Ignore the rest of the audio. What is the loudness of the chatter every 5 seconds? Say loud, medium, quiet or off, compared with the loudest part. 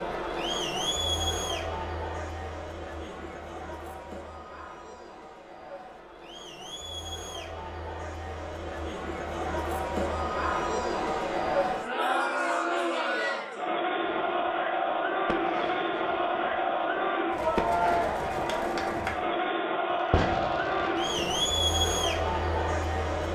medium, medium, loud, loud, loud.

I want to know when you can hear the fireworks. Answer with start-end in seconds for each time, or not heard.
14.0-21.5.